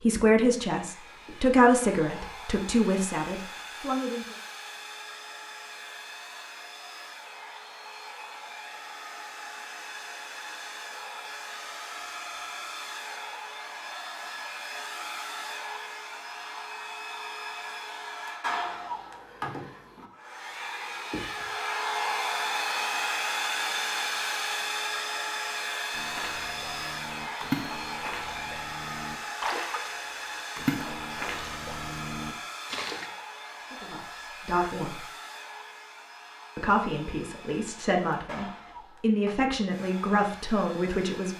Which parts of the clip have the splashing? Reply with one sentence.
The splashing can be heard from 25.9 to 33.1 s.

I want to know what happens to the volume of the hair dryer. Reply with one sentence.
The loudness of the hair dryer goes up, then down.